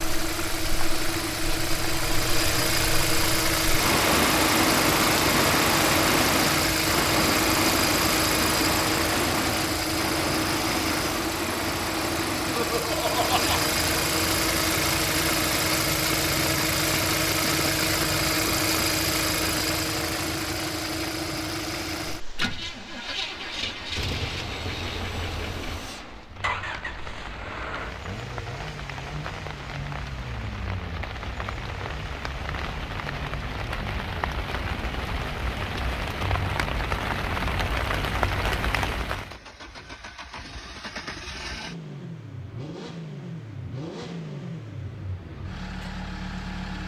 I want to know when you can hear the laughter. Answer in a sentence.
The laughter can be heard from 12.5 to 13.6 s.